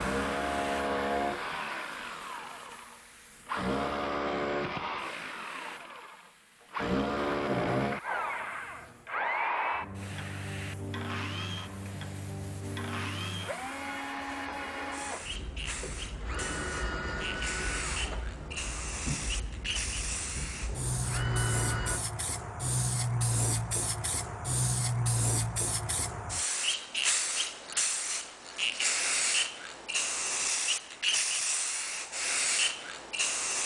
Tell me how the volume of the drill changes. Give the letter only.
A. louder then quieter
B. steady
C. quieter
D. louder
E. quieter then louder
C.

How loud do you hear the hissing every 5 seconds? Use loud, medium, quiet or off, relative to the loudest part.
quiet, quiet, quiet, medium, loud, loud, loud.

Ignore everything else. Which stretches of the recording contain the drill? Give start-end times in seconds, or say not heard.
0.0-22.0.